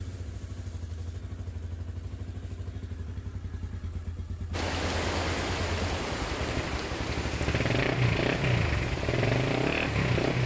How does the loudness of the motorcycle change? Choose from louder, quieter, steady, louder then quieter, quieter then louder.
louder.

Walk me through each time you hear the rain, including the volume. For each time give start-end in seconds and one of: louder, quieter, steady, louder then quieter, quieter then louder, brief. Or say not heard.
4.5-10.4 quieter.